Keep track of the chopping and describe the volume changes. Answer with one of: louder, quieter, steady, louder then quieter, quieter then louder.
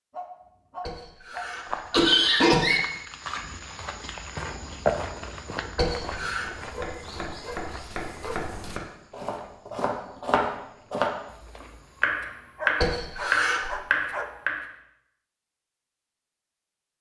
louder.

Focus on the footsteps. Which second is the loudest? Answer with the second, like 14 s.
5 s.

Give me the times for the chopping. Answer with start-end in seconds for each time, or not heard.
6.6-14.7.